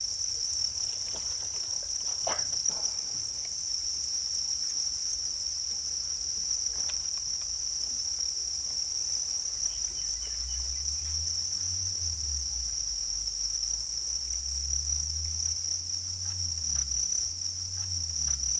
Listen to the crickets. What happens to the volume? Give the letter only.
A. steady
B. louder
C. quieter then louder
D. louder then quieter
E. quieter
A.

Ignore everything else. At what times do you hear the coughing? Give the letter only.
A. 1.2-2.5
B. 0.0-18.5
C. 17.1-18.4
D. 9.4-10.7
A.